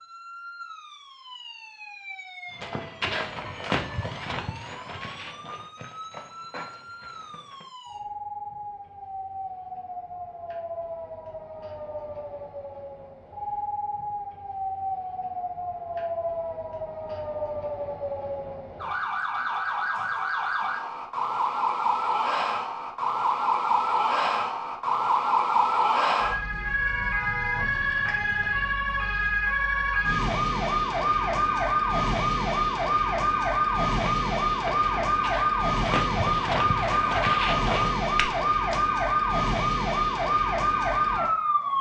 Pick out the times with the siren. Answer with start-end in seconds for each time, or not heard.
0.0-41.7.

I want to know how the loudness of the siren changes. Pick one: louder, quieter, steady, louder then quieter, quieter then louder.
louder.